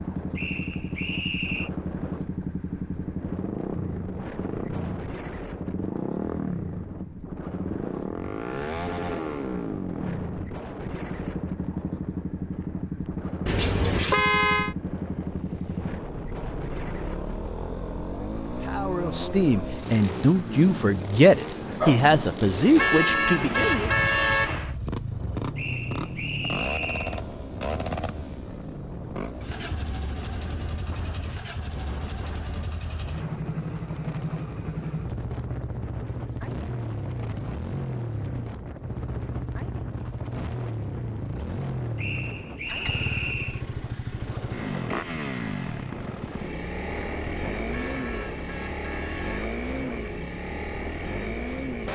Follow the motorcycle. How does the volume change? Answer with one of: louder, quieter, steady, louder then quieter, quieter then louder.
steady.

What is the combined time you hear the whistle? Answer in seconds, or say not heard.
5 s.